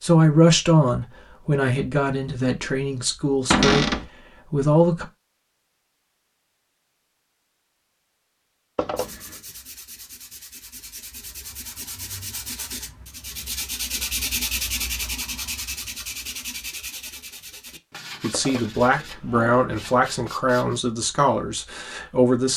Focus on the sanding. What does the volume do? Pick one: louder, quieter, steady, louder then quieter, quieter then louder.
louder then quieter.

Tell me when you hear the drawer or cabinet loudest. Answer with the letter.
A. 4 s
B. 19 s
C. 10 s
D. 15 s
A.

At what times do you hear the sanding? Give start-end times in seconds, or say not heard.
8.9-20.8.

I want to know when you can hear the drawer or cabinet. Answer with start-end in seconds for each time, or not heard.
3.5-4.0, 8.8-9.3, 18.3-19.6.